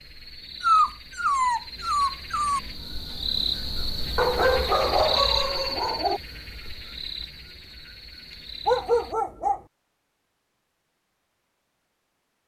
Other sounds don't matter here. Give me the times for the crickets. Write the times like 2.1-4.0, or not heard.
0.0-9.2.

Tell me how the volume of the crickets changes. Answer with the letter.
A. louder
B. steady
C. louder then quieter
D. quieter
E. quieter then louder
C.